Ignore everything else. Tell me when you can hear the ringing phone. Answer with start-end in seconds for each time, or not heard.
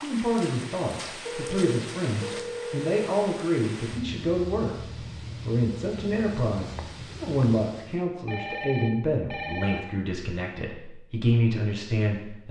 1.2-2.9, 8.2-9.8.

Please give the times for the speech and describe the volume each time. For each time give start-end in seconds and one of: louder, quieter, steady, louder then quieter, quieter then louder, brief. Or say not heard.
0.0-12.4 steady.